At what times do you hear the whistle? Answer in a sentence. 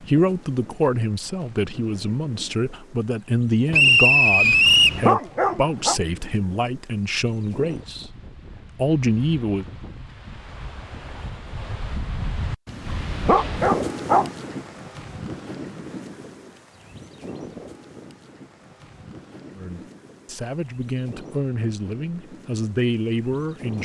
The whistle can be heard from 3.7 to 5.0 s.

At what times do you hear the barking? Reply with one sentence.
The barking can be heard from 4.5 to 6.0 s and from 12.7 to 14.3 s.